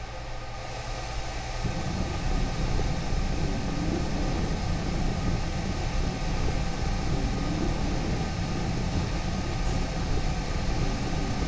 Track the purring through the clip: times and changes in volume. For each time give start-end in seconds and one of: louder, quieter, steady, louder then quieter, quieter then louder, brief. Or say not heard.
1.6-11.4 steady.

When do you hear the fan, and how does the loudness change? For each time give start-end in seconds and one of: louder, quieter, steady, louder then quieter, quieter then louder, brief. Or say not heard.
0.0-11.4 steady.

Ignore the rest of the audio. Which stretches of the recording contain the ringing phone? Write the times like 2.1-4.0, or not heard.
not heard.